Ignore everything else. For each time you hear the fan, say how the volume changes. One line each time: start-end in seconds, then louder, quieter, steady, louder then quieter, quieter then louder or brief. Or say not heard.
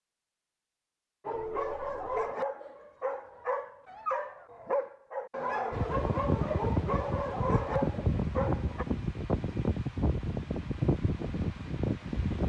5.7-12.4 steady.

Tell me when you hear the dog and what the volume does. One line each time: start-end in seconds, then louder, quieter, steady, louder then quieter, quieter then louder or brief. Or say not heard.
1.2-8.8 steady.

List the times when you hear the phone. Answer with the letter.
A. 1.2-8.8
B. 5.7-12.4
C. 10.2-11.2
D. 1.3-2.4
D.